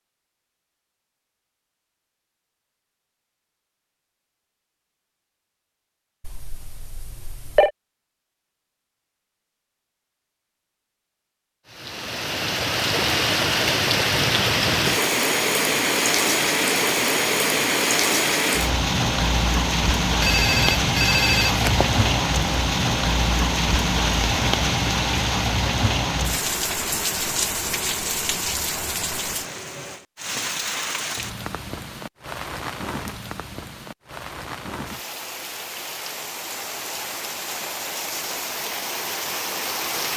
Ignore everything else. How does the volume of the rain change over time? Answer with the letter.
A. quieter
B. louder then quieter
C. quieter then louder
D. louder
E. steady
A.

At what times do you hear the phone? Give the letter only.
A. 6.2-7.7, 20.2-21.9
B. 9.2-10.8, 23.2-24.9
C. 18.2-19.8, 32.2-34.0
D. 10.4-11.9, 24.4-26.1
A.